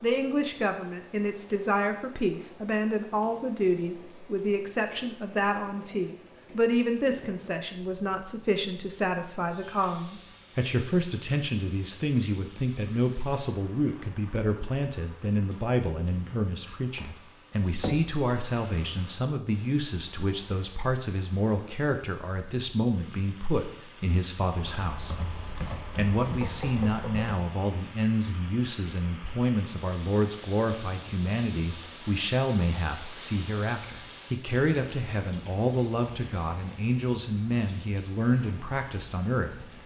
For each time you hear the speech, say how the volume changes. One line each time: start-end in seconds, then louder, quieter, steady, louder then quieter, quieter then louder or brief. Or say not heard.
0.0-39.7 steady.